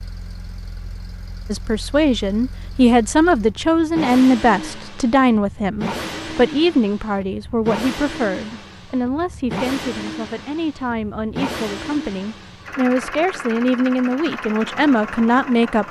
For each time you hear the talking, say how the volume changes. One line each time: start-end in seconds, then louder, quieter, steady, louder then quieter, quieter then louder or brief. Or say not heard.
1.5-15.8 quieter then louder.